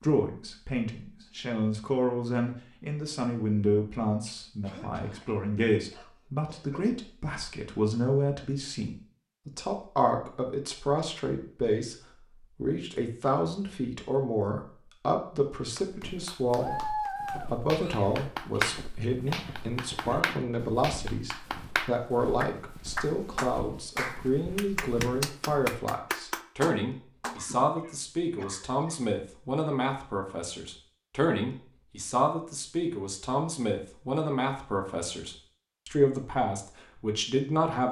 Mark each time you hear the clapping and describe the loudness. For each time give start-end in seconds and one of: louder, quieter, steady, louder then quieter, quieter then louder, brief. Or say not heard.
15.8-27.4 steady.